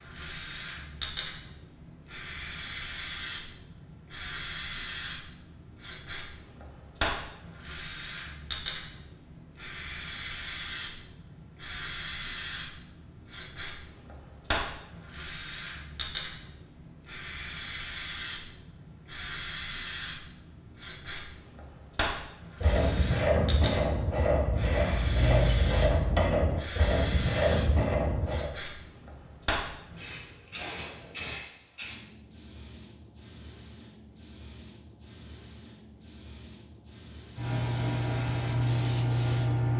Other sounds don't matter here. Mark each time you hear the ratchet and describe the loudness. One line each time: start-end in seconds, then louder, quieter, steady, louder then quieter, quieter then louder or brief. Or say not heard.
22.6-28.5 steady.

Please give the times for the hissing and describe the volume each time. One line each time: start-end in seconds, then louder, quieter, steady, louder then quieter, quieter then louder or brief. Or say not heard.
0.0-39.7 steady.